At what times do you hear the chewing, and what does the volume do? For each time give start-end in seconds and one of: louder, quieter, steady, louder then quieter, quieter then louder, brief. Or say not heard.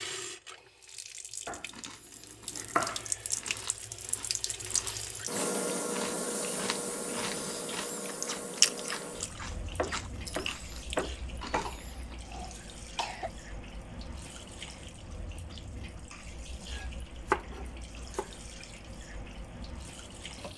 1.6-12.3 louder then quieter.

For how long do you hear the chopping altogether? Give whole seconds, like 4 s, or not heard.
5 s.